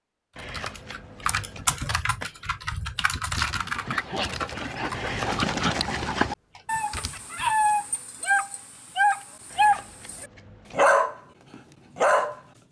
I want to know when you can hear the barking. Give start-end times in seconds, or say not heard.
3.5-12.4.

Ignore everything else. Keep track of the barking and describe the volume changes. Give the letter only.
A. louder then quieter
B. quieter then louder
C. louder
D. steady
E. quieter
C.